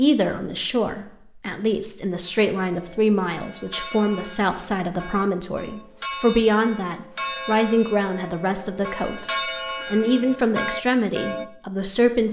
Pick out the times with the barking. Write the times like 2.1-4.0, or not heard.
not heard.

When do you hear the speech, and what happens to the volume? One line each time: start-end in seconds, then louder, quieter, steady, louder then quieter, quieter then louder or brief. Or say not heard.
0.0-12.2 steady.